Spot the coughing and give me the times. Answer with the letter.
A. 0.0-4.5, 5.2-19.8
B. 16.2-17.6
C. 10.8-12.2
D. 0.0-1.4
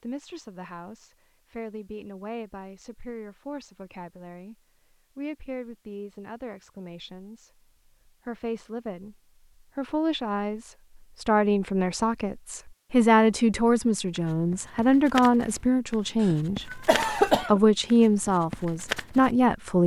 B.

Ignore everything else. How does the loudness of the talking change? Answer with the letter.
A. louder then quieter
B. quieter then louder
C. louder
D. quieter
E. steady
C.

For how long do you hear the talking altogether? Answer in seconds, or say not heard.
19 s.